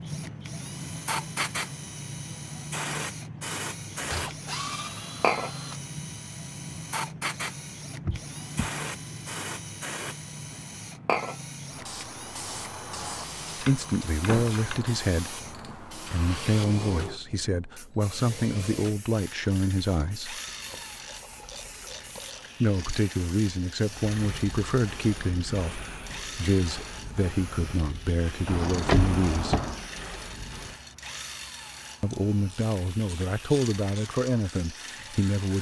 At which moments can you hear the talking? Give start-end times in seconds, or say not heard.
13.6-20.4, 22.6-29.6, 32.0-35.5.